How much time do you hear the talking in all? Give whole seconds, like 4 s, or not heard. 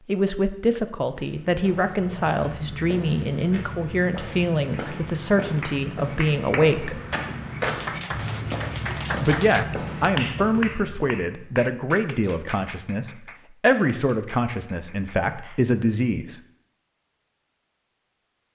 14 s.